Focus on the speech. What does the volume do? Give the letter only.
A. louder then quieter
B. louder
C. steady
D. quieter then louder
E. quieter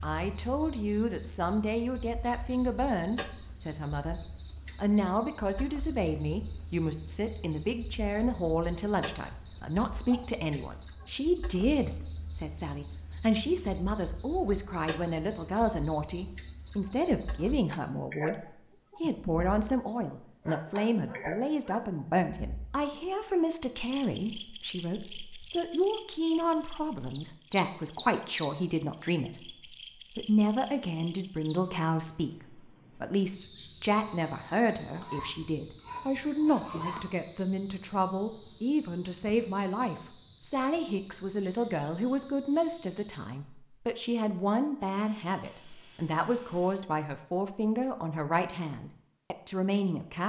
C.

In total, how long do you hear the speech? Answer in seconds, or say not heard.
50 s.